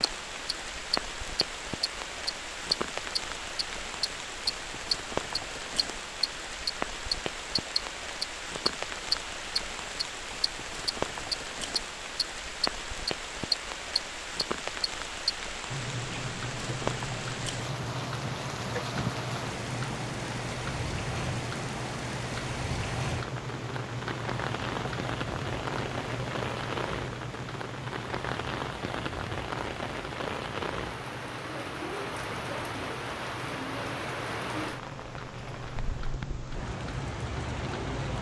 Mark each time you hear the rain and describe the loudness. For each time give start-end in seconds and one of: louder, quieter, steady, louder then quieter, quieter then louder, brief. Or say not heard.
0.0-38.1 steady.